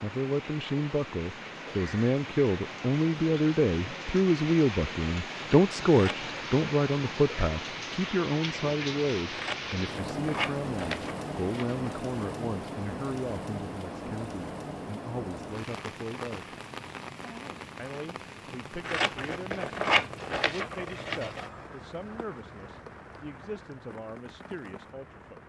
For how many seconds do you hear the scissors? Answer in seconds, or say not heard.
6 s.